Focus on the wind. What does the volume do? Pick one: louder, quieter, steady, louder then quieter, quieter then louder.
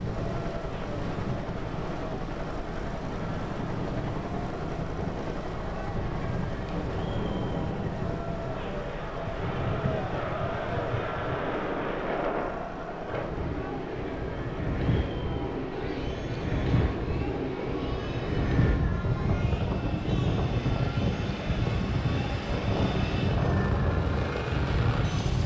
louder.